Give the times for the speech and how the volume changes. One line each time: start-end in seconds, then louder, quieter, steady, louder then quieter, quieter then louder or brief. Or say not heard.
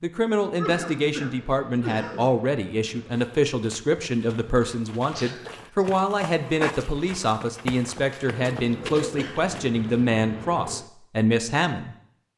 0.0-11.9 steady.